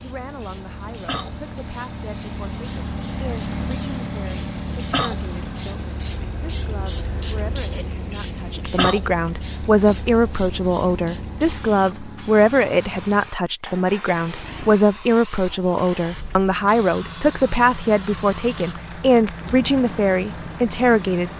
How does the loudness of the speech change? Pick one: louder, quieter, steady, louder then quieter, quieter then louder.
louder.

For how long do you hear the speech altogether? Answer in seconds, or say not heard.
21 s.